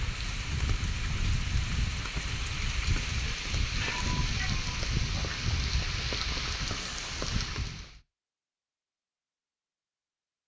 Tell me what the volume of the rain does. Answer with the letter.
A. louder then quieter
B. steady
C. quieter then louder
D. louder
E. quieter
B.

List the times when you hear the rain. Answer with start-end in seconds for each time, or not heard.
0.0-8.0.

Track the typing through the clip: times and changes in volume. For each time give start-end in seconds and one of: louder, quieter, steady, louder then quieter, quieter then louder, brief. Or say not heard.
not heard.